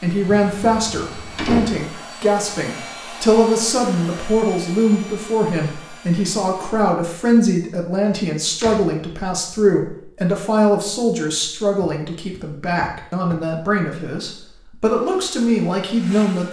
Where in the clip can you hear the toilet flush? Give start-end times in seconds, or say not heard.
not heard.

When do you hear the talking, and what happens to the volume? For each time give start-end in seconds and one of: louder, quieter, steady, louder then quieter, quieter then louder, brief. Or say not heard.
0.0-16.4 steady.